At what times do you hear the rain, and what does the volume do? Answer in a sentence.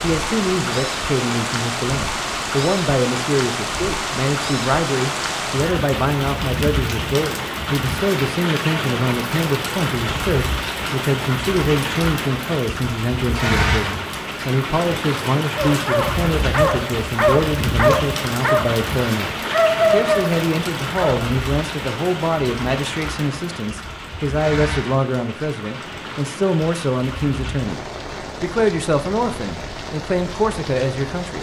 The rain can be heard from 0.0 to 31.3 s, getting quieter.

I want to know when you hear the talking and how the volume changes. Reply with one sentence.
You can hear the talking from 0.0 to 31.3 s, at a steady volume.